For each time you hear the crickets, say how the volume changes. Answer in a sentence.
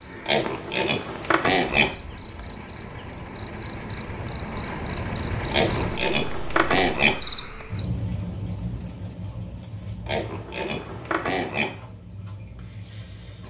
You can hear the crickets from 0.0 to 13.4 s, getting louder then quieter.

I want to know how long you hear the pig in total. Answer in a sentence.
The pig can be heard for 5 seconds in total.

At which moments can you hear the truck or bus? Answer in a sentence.
The truck or bus can't be heard in this clip.